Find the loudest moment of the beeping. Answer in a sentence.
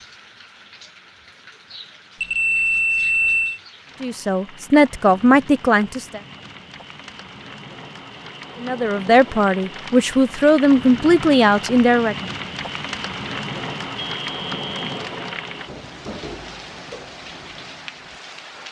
The loudest moment of the beeping is at 3 seconds.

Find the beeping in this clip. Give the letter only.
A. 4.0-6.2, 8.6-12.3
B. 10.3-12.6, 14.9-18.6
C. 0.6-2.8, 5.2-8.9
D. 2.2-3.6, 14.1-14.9
D.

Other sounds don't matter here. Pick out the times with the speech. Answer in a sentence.
The speech can be heard from 4.0 to 6.2 s and from 8.6 to 12.3 s.